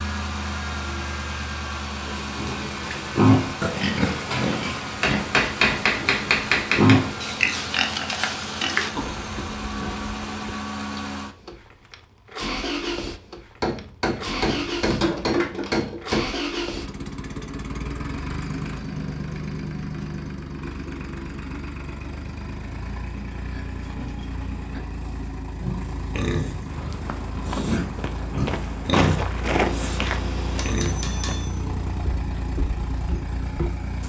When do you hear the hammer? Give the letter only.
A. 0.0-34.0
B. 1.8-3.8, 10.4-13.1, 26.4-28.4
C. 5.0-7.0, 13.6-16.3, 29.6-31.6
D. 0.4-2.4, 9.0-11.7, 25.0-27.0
C.